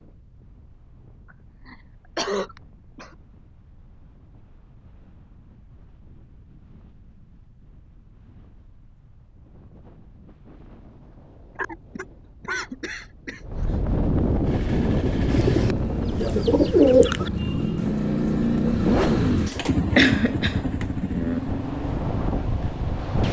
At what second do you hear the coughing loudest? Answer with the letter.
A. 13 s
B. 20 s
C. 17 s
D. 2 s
B.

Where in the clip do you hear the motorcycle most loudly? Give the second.
19 s.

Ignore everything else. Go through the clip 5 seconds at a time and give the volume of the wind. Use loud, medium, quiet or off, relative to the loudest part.
quiet, quiet, loud, loud, loud.